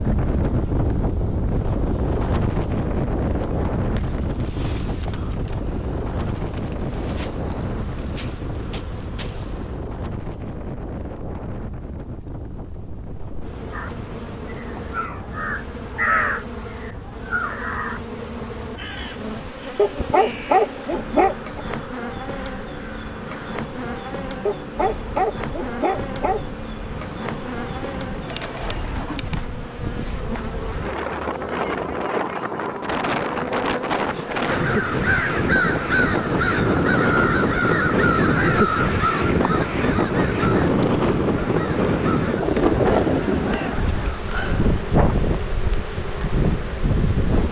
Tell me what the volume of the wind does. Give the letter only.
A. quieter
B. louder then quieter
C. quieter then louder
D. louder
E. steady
C.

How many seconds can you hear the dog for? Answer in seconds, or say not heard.
4 s.